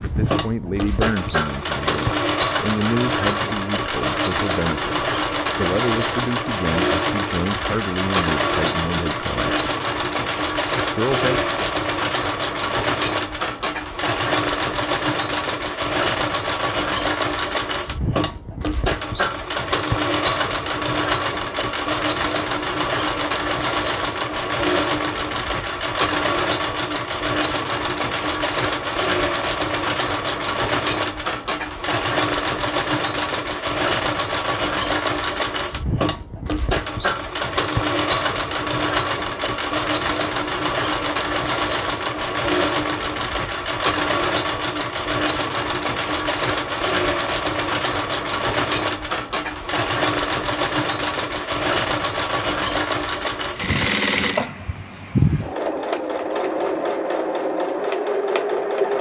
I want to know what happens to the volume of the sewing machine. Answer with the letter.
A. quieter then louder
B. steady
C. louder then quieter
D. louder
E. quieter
B.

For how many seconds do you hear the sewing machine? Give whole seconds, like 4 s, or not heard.
59 s.